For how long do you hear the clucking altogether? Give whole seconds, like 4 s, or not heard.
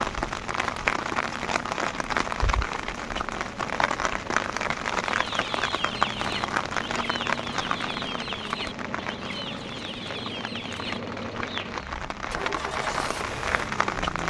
7 s.